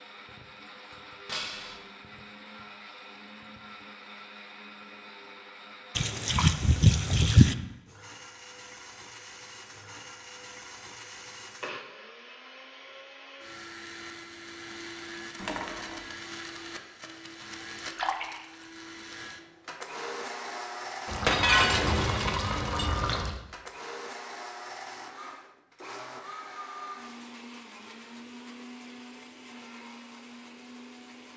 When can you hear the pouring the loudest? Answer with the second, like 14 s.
7 s.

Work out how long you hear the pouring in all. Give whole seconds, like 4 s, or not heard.
5 s.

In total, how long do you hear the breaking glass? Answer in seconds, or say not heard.
3 s.